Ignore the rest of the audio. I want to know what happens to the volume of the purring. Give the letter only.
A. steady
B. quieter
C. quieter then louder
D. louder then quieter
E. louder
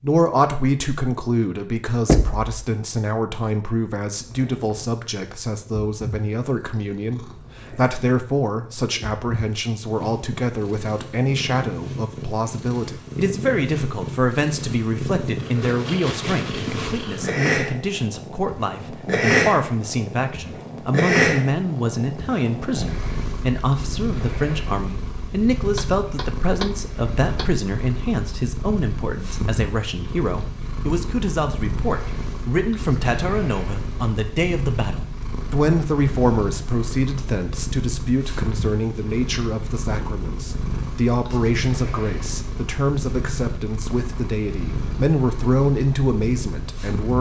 D.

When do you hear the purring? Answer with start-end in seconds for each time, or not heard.
4.0-47.1.